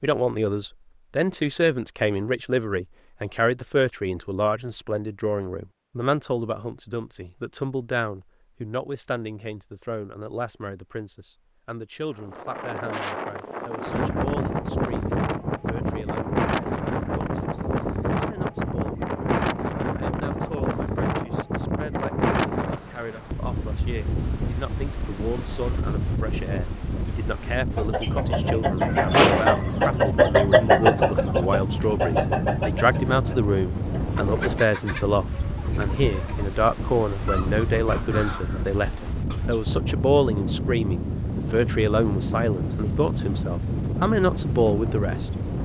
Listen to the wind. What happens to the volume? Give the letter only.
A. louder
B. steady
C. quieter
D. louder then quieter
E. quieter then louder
B.